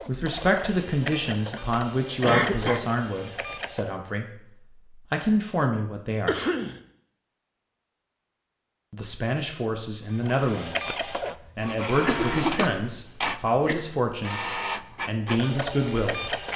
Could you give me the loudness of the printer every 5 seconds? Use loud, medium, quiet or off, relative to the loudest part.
medium, off, loud, loud.